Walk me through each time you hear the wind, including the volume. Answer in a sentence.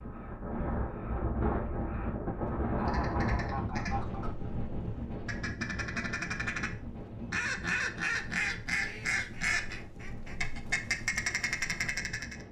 The wind can be heard from 0.0 to 12.4 s, getting quieter.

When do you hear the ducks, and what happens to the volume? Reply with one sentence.
The ducks can be heard from 2.6 to 12.4 s, getting louder.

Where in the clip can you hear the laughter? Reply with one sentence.
The laughter can be heard from 2.8 to 4.2 s.